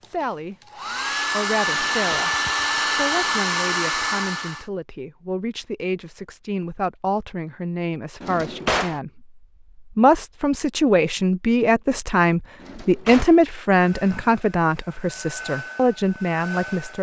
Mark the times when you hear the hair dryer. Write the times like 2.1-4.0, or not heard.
0.0-4.7, 13.7-16.9.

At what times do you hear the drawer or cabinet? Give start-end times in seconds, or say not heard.
1.6-2.4, 8.2-9.0, 12.6-13.3.